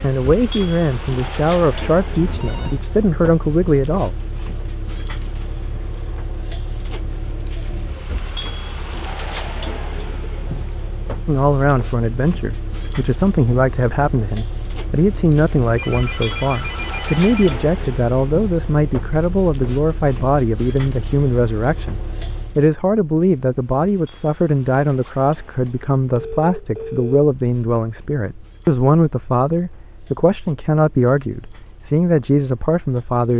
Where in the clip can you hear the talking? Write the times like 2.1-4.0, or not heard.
0.0-4.2, 11.2-33.3.